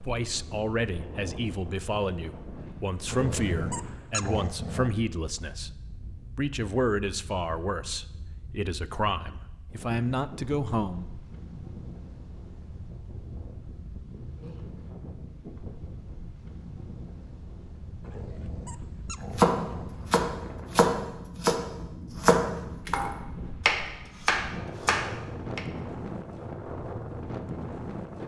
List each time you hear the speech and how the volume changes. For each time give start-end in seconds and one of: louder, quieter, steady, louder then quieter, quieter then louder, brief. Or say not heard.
0.0-11.3 steady.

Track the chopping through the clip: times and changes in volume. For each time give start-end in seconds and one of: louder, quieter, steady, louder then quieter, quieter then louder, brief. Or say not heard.
19.4-25.6 steady.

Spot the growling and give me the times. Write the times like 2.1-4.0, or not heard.
3.0-5.0, 18.0-20.1.